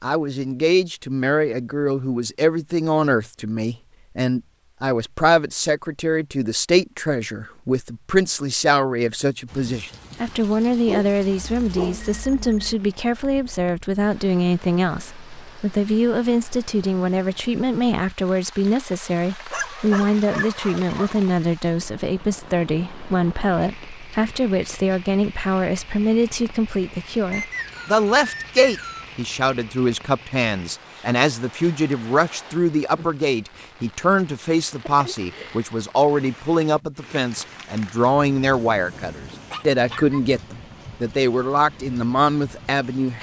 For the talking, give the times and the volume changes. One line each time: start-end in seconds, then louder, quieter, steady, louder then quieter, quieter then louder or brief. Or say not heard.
0.0-43.1 steady.